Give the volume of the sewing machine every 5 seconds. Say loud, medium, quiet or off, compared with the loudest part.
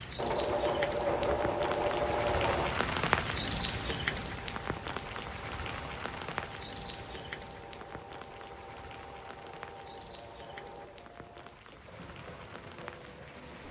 loud, quiet, quiet.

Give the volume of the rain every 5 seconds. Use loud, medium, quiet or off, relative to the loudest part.
loud, medium, quiet.